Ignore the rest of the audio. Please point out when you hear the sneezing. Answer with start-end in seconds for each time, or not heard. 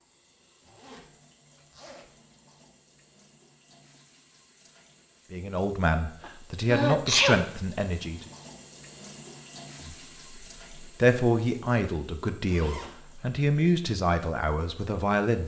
6.2-7.4.